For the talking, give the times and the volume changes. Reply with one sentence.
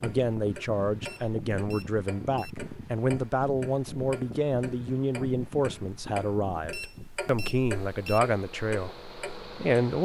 The talking can be heard from 0.0 to 10.0 s, at a steady volume.